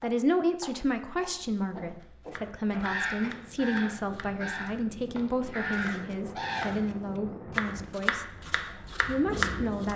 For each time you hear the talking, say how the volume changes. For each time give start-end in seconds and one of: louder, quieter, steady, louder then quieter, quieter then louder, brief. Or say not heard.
0.0-8.2 steady
9.1-9.9 brief.